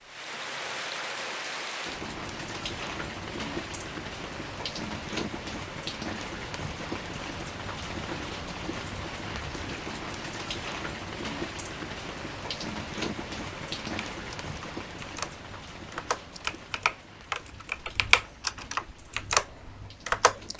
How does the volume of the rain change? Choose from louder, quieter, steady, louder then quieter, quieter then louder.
quieter.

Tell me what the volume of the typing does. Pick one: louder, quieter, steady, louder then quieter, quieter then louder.
louder.